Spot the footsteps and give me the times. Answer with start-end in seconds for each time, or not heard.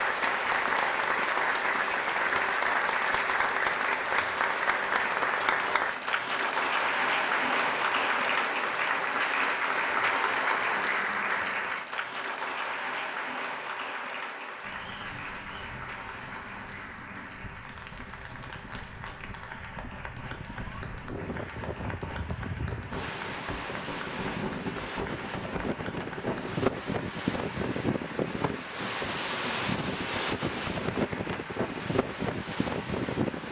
not heard.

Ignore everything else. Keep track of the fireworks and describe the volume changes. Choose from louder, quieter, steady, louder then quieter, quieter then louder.
louder then quieter.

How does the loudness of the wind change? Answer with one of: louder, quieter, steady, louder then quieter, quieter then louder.
louder.